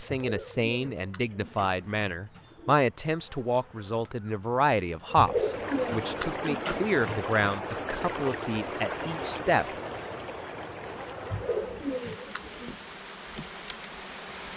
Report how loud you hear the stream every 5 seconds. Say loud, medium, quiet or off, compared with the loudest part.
off, loud, medium.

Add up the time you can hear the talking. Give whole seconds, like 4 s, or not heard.
10 s.